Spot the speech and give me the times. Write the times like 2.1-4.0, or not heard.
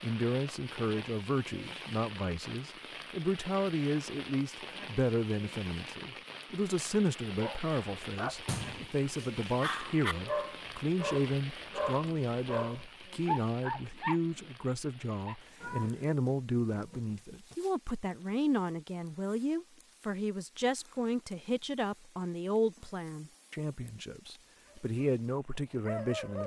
0.0-26.4.